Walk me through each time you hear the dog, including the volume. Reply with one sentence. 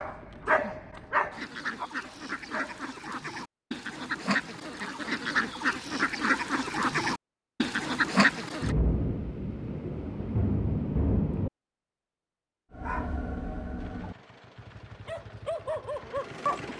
The dog can be heard briefly from 0.0 to 2.9 s; and from 12.7 to 16.7 s, getting quieter then louder.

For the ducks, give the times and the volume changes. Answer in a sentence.
The ducks can be heard from 1.3 to 8.8 s, getting louder.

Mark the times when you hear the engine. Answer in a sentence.
The engine can be heard from 13.8 to 16.7 s.